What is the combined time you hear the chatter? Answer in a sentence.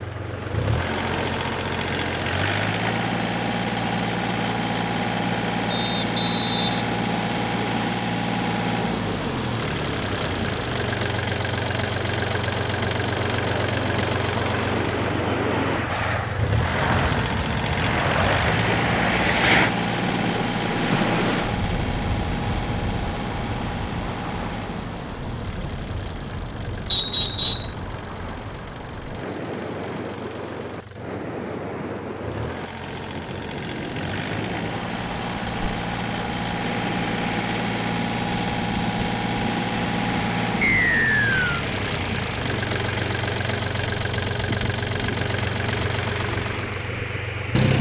The chatter can't be heard in this clip.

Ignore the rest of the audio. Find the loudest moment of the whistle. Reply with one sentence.
The volume of the whistle peaks at 27 seconds.